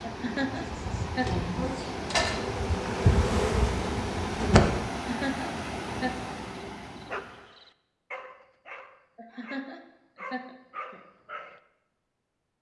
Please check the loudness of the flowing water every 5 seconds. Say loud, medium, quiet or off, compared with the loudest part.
loud, loud, off.